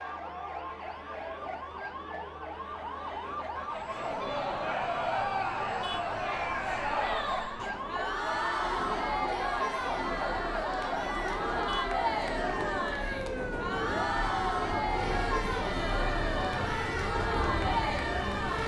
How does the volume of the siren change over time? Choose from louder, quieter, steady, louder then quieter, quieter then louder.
steady.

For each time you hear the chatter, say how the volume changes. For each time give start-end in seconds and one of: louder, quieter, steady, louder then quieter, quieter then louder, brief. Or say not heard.
3.9-18.6 steady.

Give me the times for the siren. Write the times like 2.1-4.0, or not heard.
0.0-18.6.